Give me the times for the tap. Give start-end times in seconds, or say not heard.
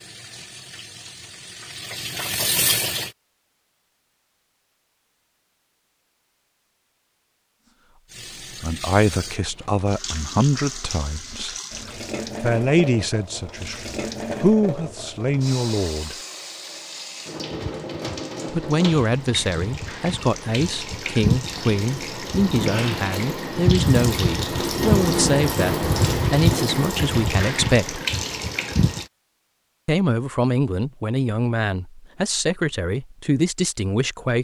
0.0-3.1, 8.1-29.1.